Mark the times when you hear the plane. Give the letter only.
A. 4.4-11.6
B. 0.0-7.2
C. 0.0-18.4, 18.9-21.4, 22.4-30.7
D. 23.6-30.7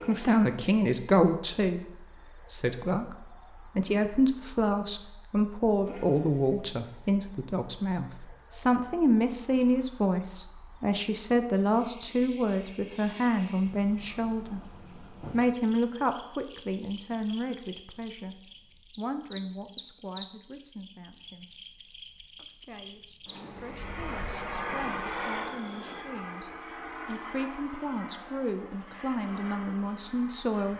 D.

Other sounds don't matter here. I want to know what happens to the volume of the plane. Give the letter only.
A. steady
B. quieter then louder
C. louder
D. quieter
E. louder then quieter
D.